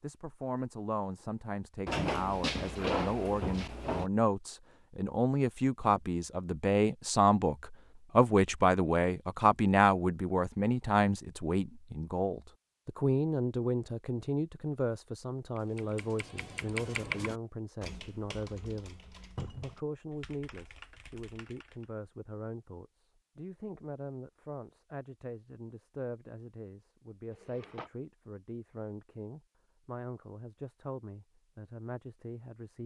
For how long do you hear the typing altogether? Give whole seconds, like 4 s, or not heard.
6 s.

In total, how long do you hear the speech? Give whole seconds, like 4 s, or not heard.
33 s.